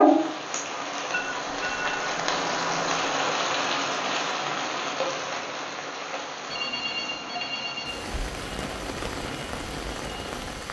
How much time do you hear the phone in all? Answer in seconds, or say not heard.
3 s.